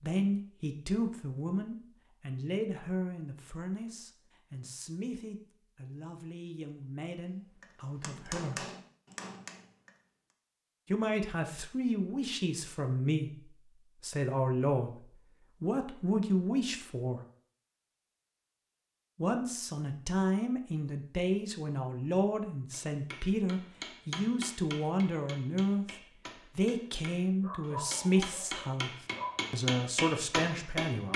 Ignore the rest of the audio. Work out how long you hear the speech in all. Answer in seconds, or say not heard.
26 s.